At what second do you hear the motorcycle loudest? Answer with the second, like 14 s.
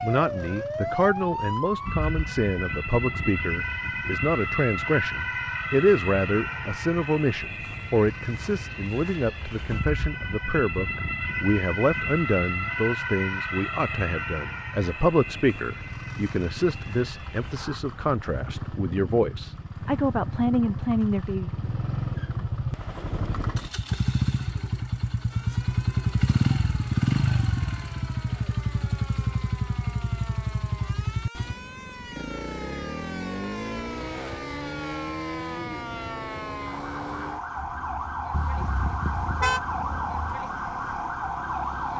27 s.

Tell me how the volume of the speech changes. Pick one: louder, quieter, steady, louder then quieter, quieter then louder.
steady.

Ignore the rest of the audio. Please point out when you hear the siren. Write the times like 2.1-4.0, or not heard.
0.0-17.8, 25.3-41.9.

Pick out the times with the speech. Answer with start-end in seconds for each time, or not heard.
0.0-21.5.